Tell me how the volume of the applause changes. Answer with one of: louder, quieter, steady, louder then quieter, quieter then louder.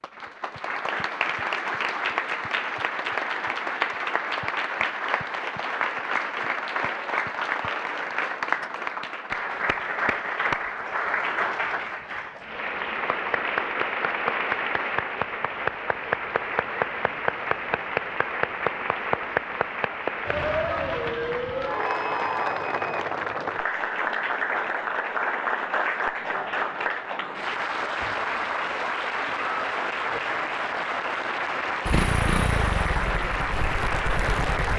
steady.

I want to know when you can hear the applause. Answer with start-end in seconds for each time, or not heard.
0.0-34.7.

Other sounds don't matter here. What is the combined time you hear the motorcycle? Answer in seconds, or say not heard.
3 s.